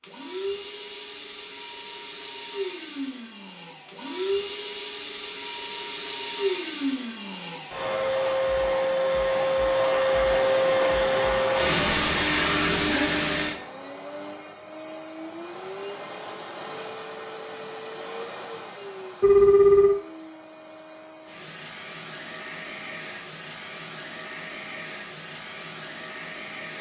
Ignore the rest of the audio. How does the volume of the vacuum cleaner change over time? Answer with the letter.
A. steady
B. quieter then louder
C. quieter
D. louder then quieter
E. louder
D.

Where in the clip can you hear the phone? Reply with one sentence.
The phone can be heard from 19.2 to 20.0 s.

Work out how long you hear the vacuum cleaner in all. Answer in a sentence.
The vacuum cleaner can be heard for 27 seconds in total.